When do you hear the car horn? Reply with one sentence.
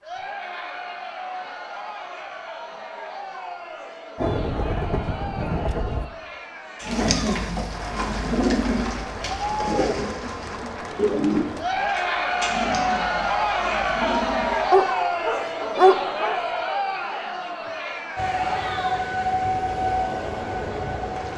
The car horn can't be heard in this clip.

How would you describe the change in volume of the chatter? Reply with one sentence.
The volume of the chatter goes up, then down.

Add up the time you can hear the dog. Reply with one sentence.
You can hear the dog for 2 seconds altogether.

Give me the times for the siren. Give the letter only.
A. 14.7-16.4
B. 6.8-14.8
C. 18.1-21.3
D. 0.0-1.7
C.